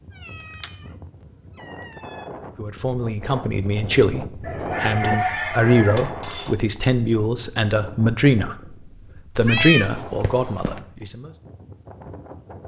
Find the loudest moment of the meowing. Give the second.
10 s.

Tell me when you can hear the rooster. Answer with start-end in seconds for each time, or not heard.
4.4-6.2.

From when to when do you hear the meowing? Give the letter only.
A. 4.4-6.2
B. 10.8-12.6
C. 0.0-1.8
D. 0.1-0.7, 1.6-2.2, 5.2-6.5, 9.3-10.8
D.